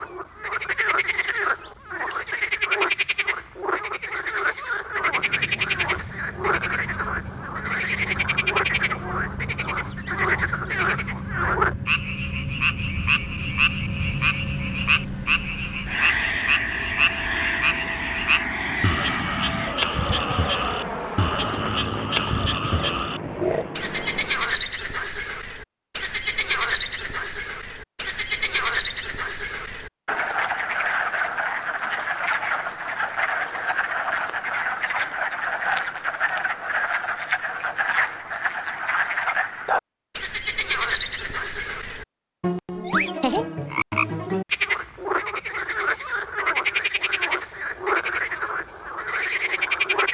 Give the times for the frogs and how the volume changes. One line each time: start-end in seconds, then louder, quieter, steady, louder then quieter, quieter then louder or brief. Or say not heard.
0.0-50.1 steady.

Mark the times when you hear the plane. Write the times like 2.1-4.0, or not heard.
4.9-24.7.